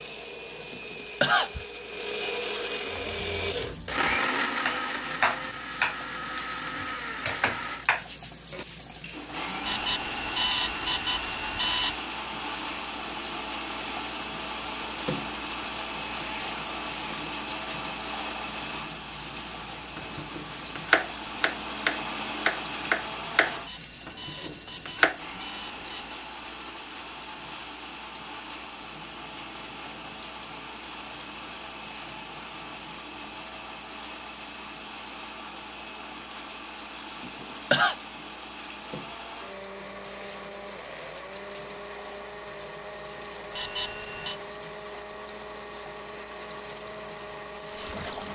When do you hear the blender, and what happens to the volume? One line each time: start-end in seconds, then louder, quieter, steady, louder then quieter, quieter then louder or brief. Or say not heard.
0.0-48.3 quieter.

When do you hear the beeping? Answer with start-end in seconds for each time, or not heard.
9.7-11.9, 23.5-26.1, 43.5-44.4.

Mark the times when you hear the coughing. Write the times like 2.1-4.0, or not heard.
0.7-1.6, 37.2-38.0.